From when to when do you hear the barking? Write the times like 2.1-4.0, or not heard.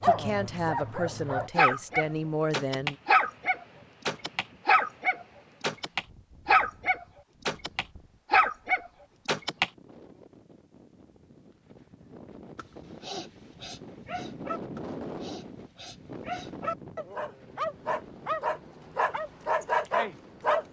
0.0-9.7, 12.6-20.6.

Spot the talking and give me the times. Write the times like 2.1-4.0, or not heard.
0.0-3.0.